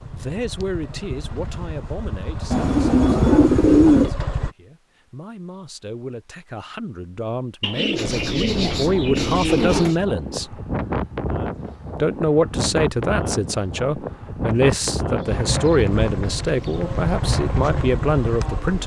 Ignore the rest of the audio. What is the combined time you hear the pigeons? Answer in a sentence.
You can hear the pigeons for 6 seconds altogether.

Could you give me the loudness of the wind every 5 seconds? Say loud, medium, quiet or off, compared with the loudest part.
off, loud, loud, loud.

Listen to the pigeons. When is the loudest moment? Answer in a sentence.
The loudest moment of the pigeons is at 4 seconds.